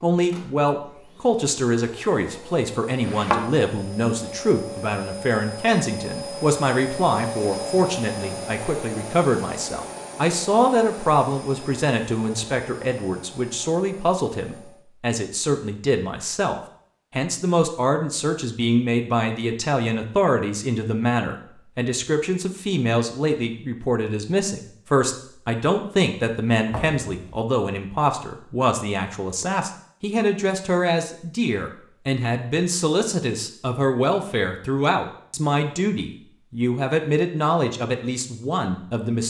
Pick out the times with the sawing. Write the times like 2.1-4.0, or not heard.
not heard.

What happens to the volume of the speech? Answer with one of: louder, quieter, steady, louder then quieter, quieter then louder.
steady.